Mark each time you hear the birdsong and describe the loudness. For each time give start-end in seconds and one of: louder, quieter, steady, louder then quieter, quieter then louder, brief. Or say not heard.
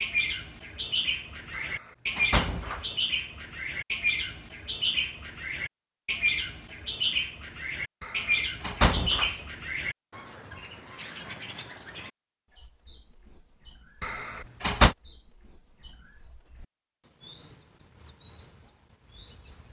0.0-19.6 quieter.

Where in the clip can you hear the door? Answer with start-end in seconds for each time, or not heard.
1.5-2.9, 8.0-9.4, 14.0-14.9.